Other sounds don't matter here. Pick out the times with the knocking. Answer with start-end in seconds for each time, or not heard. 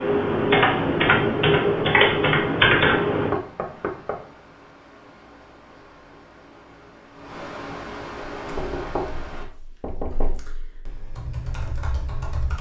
3.3-4.2, 8.6-10.4.